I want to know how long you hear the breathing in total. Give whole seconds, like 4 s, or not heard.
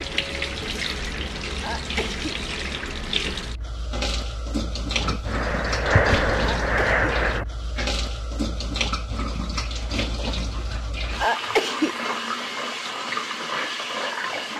3 s.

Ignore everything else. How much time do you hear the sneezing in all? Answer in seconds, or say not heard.
2 s.